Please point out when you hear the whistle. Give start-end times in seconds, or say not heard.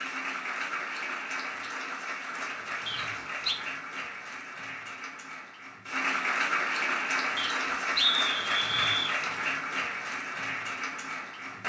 2.9-3.5, 7.3-9.2.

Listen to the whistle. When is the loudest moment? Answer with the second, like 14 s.
8 s.